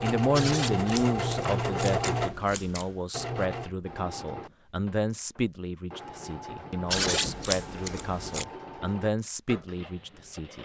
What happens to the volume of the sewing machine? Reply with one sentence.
The volume of the sewing machine goes down.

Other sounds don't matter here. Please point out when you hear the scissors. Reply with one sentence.
You can hear the scissors from 0.3 to 3.0 s and from 6.9 to 8.4 s.